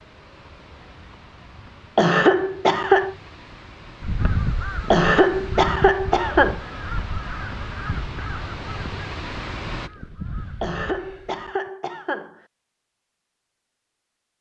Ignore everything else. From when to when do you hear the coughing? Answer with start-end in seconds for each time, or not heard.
1.9-3.1, 4.9-6.6, 10.6-12.4.